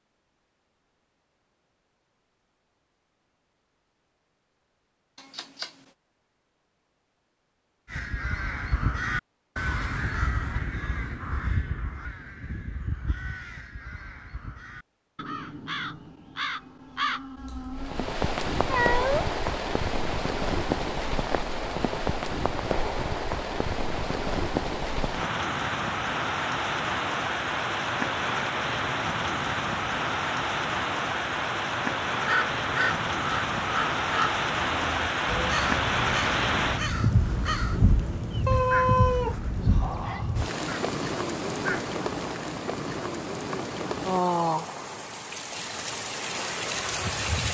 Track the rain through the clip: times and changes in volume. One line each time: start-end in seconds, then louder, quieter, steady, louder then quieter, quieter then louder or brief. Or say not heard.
17.8-47.4 steady.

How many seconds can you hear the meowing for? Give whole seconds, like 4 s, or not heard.
3 s.